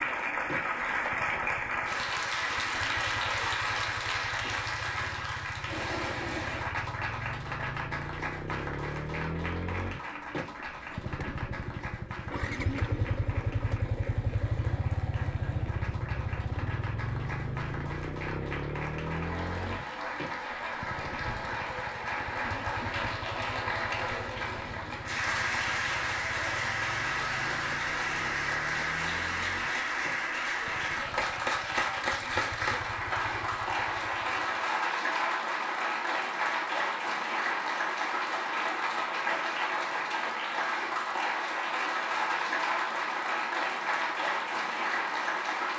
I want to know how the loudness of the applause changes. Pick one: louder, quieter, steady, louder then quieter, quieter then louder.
quieter then louder.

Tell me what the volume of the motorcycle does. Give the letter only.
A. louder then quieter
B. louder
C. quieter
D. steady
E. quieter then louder
A.